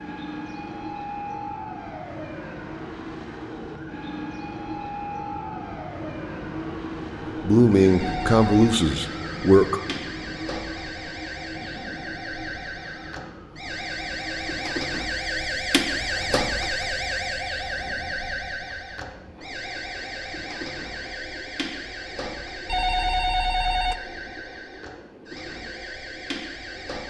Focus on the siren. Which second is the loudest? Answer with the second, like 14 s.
16 s.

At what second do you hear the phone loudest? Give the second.
23 s.